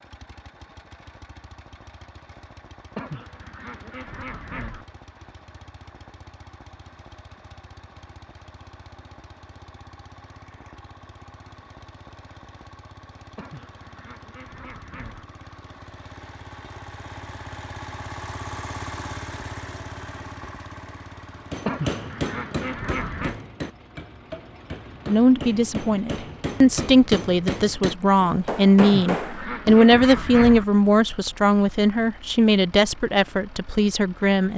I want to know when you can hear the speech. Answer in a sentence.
You can hear the speech from 25.1 to 34.5 s.